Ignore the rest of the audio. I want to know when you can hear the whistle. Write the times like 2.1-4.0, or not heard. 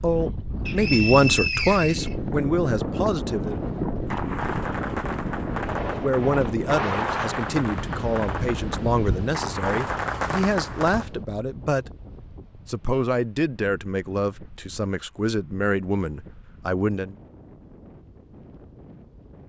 0.7-2.1.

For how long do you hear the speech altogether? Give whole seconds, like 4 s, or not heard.
14 s.